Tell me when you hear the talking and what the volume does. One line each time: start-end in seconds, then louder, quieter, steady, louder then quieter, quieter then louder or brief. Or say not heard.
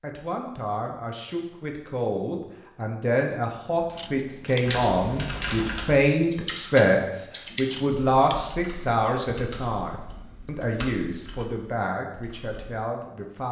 0.0-13.4 louder then quieter.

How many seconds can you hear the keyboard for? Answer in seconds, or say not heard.
8 s.